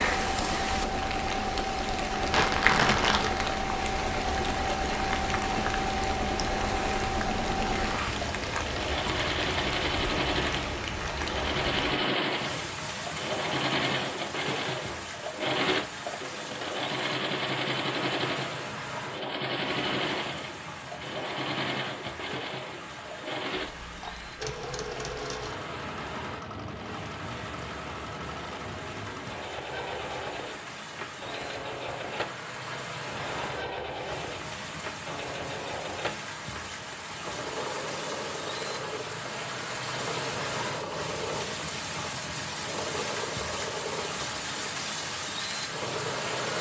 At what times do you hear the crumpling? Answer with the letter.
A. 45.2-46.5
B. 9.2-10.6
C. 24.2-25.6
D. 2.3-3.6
D.